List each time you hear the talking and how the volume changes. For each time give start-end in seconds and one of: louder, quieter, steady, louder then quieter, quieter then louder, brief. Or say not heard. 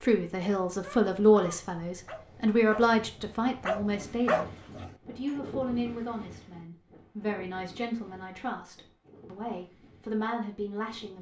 0.0-11.1 quieter.